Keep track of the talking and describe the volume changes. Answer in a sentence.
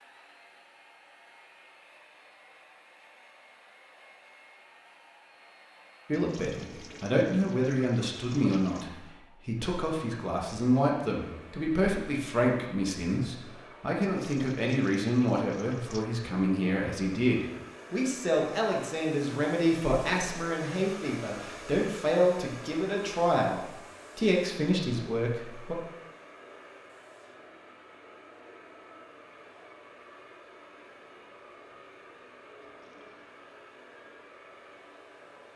The loudness of the talking stays about the same.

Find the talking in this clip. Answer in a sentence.
You can hear the talking from 6.0 to 25.8 s.